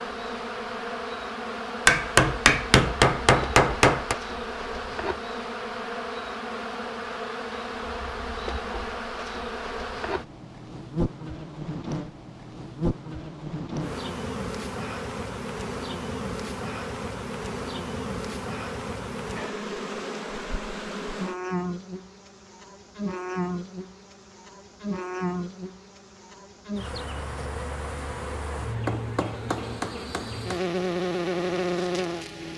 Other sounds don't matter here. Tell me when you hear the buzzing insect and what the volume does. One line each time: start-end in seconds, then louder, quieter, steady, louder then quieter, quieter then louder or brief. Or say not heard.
0.0-32.5 steady.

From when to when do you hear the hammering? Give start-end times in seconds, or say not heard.
1.9-4.2, 28.9-30.6.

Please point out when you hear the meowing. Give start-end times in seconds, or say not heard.
not heard.